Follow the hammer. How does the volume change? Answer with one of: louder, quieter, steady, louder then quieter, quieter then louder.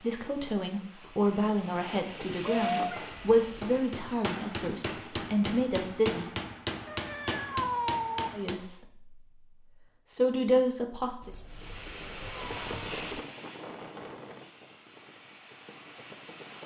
louder.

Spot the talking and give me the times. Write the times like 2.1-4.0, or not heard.
0.0-6.3, 8.3-9.2, 10.1-11.3.